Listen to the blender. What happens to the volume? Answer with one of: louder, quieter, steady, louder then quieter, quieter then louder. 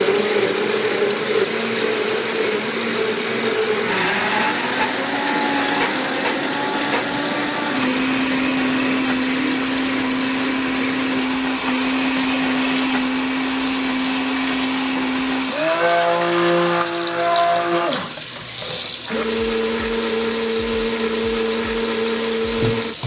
steady.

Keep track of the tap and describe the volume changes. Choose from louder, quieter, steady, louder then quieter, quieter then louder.
steady.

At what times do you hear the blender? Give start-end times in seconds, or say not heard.
0.0-22.9.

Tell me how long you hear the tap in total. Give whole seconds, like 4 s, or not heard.
23 s.